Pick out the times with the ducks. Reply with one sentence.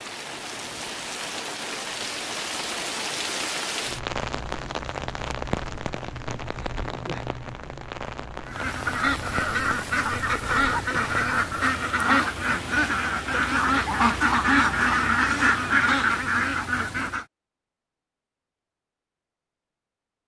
You can hear the ducks from 8.4 to 17.2 s.